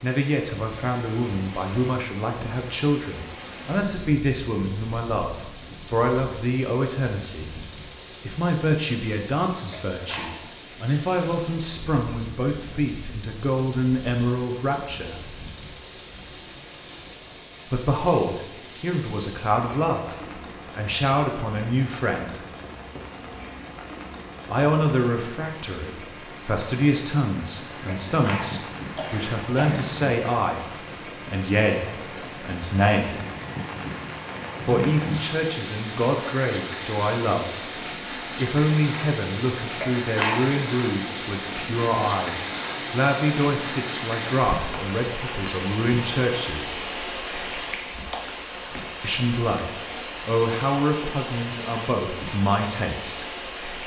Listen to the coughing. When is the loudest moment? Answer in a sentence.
The volume of the coughing peaks at 40 seconds.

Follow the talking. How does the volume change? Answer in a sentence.
The loudness of the talking stays about the same.